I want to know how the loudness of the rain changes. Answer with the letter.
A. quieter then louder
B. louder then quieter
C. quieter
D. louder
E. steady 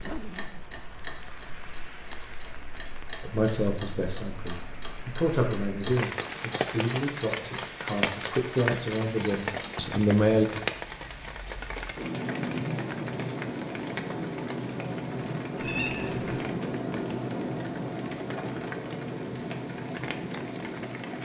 B.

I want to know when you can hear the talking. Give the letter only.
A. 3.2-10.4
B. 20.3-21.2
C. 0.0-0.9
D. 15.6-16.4
A.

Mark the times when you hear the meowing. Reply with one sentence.
You can hear the meowing from 15.6 to 16.4 s.